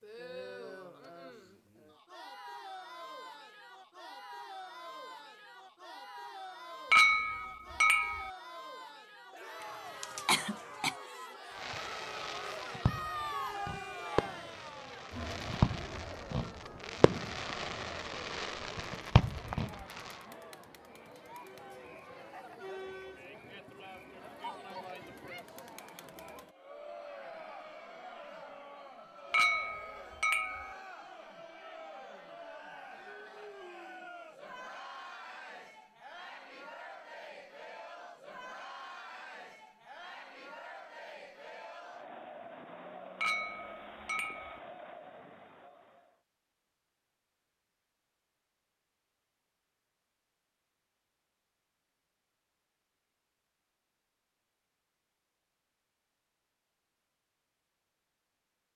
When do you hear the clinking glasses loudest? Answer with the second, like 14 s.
7 s.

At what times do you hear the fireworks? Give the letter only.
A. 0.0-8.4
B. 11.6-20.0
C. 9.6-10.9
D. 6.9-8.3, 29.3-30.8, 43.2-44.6
B.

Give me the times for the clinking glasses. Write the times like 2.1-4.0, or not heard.
6.9-8.3, 29.3-30.8, 43.2-44.6.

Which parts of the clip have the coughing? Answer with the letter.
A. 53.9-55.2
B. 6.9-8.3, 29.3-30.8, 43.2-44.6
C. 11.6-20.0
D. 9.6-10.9
D.